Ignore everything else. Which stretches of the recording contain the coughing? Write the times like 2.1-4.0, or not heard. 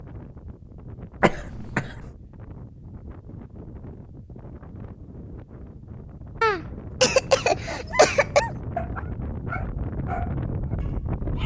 1.2-1.9, 6.4-8.4.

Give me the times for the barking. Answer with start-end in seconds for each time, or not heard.
7.7-11.4.